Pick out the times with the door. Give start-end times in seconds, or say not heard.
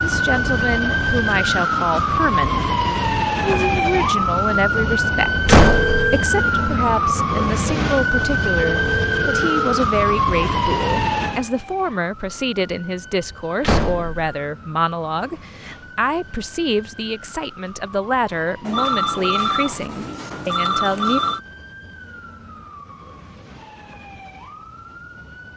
5.5-6.0, 13.6-14.3.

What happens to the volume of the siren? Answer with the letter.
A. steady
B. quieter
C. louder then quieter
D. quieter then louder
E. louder
B.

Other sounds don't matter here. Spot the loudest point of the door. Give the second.
6 s.